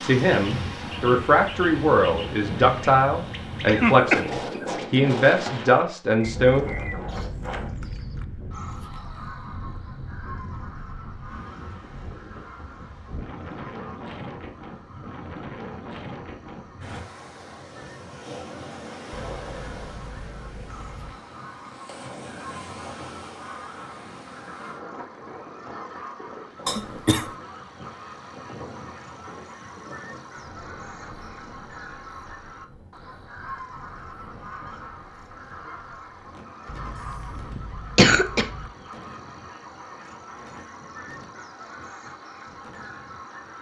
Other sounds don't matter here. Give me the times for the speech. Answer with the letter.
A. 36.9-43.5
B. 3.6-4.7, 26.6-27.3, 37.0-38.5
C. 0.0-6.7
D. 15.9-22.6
C.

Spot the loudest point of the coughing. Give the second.
38 s.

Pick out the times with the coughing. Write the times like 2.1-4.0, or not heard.
3.6-4.7, 26.6-27.3, 37.0-38.5.